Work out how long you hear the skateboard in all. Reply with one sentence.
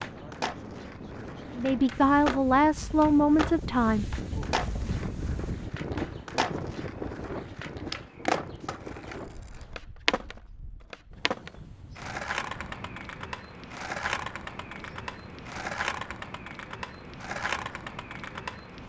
You can hear the skateboard for 19 seconds altogether.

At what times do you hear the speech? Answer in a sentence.
The speech can be heard from 1.6 to 4.0 s.